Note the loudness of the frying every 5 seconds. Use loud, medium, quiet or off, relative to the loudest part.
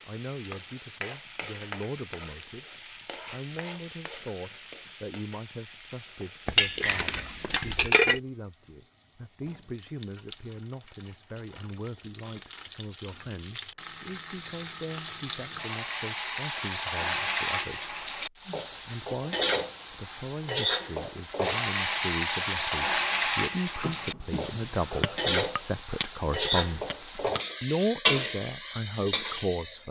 quiet, quiet, quiet, loud, loud, loud.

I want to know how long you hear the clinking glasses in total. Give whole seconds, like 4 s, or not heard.
4 s.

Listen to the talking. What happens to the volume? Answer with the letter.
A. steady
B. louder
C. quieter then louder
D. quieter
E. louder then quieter
B.